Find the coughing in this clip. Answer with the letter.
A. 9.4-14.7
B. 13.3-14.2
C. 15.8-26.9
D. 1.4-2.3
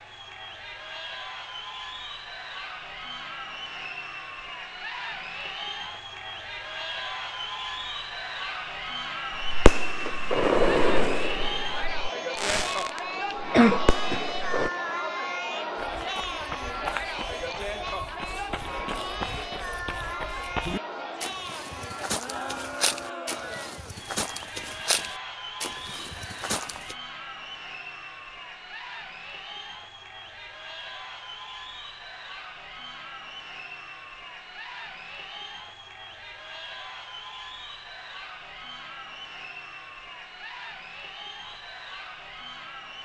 B.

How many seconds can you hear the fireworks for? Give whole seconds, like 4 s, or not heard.
5 s.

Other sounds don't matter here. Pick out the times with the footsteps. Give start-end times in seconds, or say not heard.
15.8-26.9.